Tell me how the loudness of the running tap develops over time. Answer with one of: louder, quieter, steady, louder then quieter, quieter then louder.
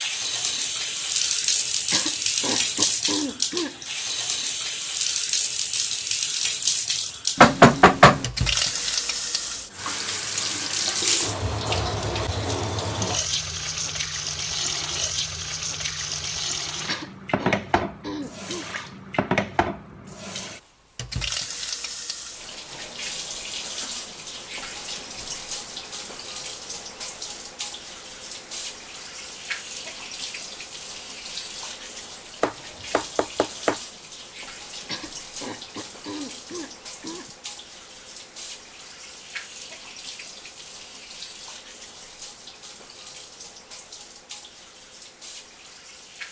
quieter.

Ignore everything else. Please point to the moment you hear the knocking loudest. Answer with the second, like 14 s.
8 s.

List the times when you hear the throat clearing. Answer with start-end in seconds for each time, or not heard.
1.9-3.8, 16.9-18.6, 34.9-37.3.